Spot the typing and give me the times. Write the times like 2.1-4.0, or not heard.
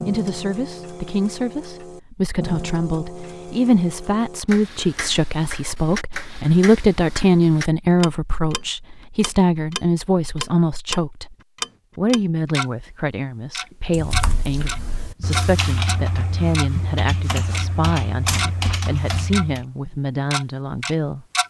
13.9-19.6.